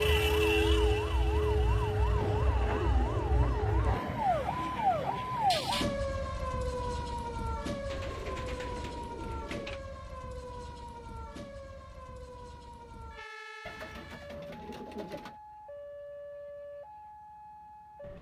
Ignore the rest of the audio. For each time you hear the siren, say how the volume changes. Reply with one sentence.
The siren can be heard from 0.0 to 18.1 s, getting quieter.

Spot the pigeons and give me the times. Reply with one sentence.
The pigeons can be heard from 2.1 to 4.0 s, from 7.8 to 9.8 s and from 13.7 to 15.3 s.